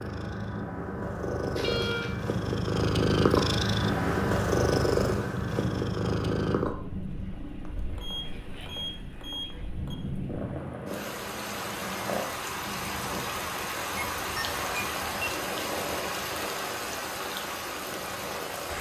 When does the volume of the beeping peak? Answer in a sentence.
The volume of the beeping peaks at 2 seconds.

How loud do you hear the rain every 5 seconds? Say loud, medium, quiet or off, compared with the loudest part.
off, medium, loud, loud.